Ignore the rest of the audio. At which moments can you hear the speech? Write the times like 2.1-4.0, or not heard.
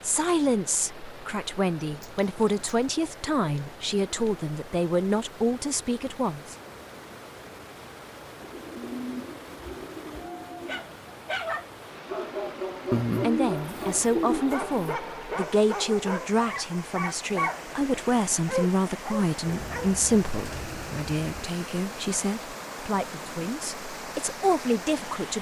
0.0-6.5, 13.2-25.3.